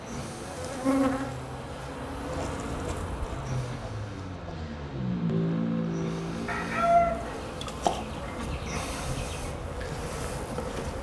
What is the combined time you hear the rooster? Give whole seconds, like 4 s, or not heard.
3 s.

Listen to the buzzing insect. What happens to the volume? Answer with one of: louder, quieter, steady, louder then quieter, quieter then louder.
quieter then louder.